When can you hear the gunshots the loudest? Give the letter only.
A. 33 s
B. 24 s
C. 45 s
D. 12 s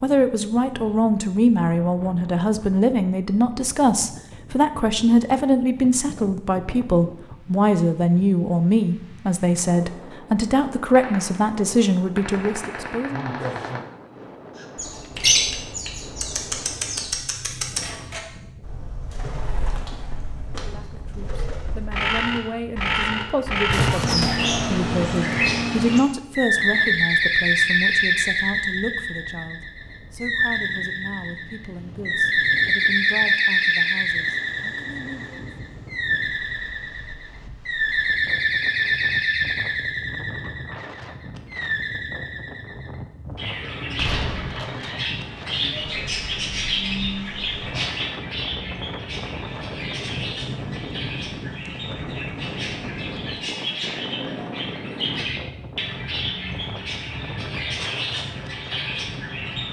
B.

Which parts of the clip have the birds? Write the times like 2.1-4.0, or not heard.
14.6-59.6.